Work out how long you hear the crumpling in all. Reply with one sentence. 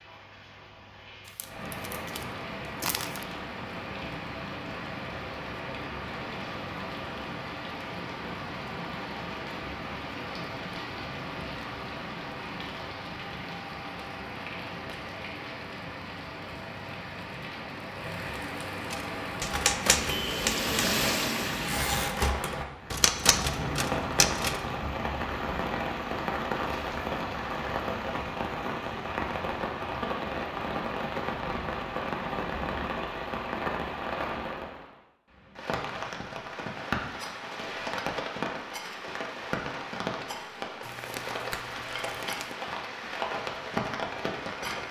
You can hear the crumpling for 4 seconds altogether.